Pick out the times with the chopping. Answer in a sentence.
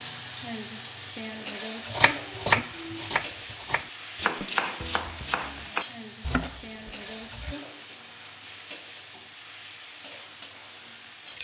You can hear the chopping from 1.9 to 7.5 s.